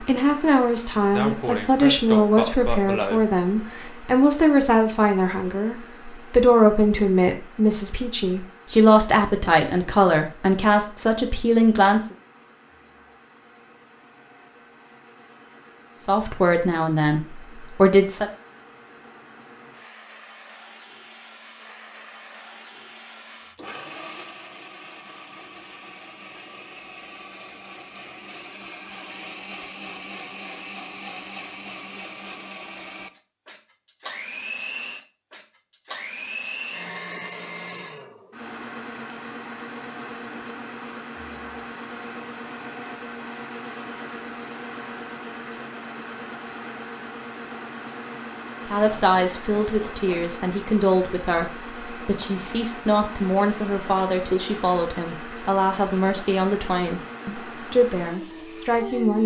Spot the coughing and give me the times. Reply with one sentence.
You can hear the coughing from 1.1 to 3.2 s and from 48.8 to 50.2 s.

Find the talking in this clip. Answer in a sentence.
The talking can be heard from 0.0 to 12.0 s, from 16.1 to 18.3 s and from 48.6 to 59.2 s.